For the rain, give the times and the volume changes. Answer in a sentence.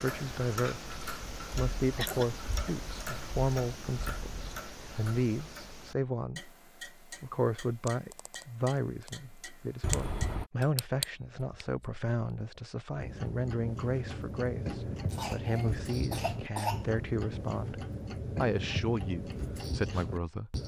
The rain can't be heard in this clip.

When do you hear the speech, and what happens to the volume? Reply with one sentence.
You can hear the speech from 0.0 to 20.6 s, at a steady volume.